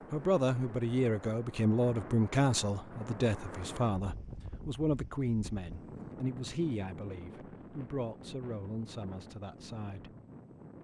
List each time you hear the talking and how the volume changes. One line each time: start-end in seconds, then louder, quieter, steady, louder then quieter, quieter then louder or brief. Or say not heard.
0.1-10.2 quieter.